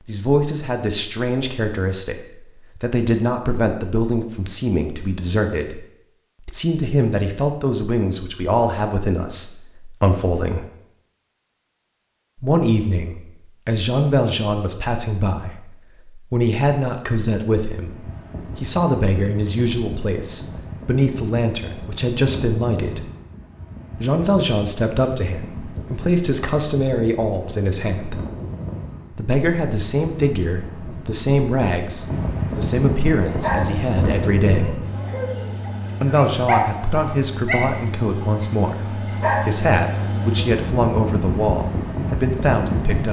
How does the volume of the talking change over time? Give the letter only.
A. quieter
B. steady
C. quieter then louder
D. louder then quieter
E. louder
B.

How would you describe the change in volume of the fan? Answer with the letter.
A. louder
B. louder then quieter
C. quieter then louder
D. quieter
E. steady
A.